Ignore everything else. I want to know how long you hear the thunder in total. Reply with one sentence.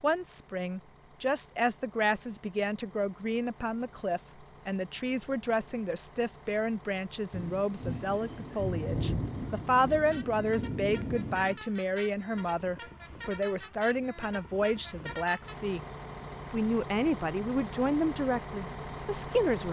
You can hear the thunder for 4 seconds altogether.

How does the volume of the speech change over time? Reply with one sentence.
The volume of the speech stays about the same.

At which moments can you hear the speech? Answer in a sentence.
You can hear the speech from 0.0 to 15.8 s and from 16.5 to 19.6 s.